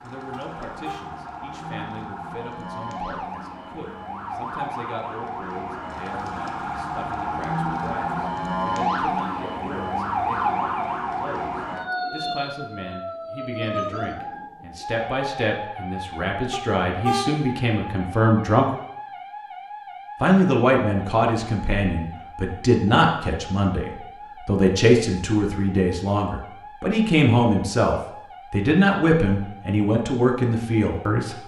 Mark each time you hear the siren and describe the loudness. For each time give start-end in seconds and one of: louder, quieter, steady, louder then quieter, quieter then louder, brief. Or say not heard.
0.0-31.4 louder then quieter.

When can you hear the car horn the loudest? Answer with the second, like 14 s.
17 s.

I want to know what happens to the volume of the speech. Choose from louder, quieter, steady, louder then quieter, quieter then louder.
louder.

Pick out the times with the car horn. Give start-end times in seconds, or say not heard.
0.3-1.1, 16.5-17.3.